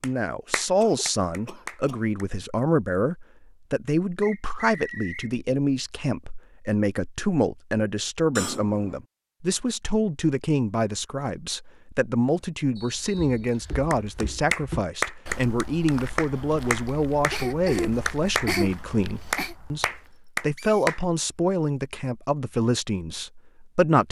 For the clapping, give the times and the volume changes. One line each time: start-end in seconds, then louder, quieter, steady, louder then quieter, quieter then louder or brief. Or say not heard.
0.0-2.2 brief
13.9-18.5 quieter
19.3-21.0 brief.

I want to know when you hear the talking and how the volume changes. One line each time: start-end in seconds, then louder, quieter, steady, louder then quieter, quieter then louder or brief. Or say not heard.
0.0-24.0 steady.